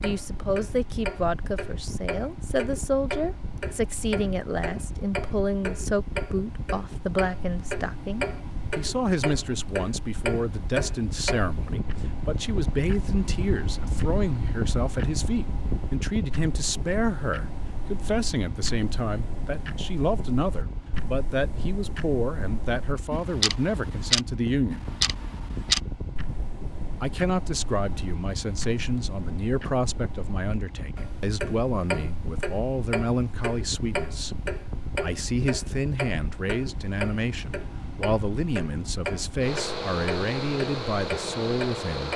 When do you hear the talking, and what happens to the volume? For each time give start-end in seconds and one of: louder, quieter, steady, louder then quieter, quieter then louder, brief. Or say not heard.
0.0-24.9 steady
27.0-42.1 steady.